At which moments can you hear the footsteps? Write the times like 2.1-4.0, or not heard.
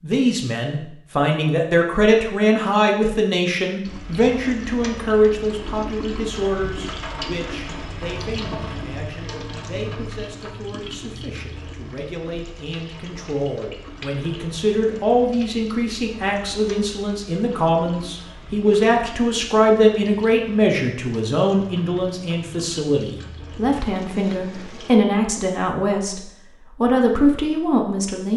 not heard.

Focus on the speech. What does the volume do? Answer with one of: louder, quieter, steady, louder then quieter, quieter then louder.
quieter then louder.